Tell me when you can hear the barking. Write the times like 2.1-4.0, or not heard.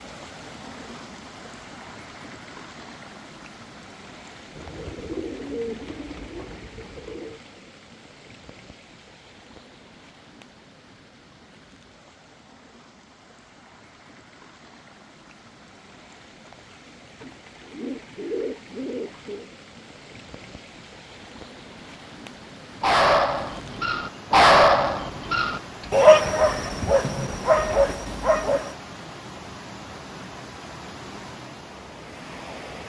22.8-28.8.